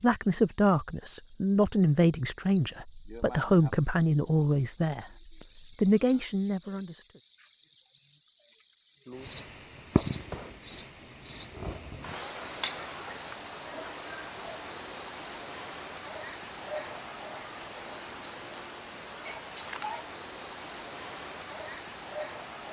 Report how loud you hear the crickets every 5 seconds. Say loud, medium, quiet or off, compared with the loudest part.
loud, loud, medium, quiet, quiet.